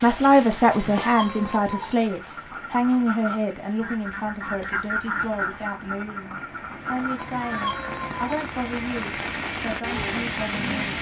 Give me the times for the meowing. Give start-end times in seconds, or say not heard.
0.7-1.9, 7.2-8.4.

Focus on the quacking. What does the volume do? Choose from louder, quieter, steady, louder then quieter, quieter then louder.
louder then quieter.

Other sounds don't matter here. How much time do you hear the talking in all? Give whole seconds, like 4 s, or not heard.
11 s.